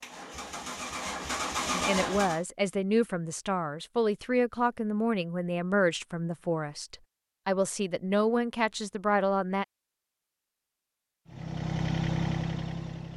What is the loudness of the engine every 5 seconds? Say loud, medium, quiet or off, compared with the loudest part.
loud, off, loud.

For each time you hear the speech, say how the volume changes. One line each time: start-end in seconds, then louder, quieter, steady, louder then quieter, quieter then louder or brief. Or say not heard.
1.7-9.7 steady.